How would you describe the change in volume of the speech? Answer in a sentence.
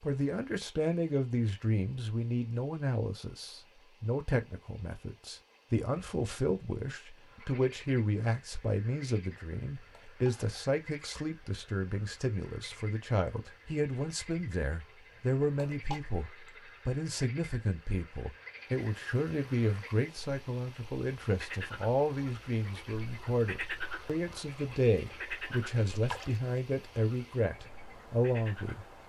The loudness of the speech stays about the same.